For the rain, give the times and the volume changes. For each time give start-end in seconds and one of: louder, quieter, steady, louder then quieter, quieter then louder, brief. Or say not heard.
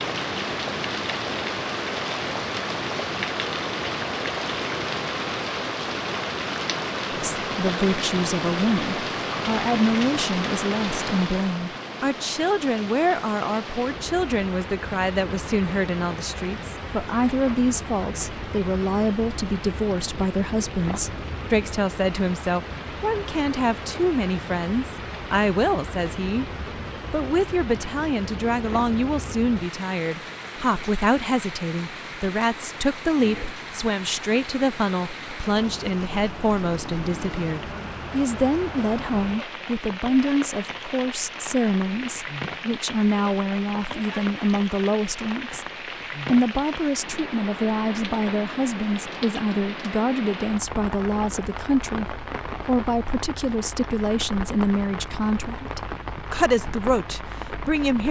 0.0-58.0 quieter.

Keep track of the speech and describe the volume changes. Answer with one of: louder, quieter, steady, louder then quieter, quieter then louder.
steady.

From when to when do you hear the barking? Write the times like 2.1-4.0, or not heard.
not heard.